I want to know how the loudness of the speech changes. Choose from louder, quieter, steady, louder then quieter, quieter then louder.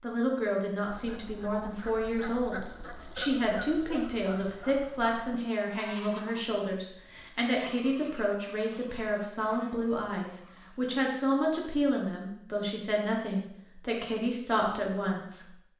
steady.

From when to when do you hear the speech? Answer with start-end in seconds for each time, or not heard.
0.0-15.5.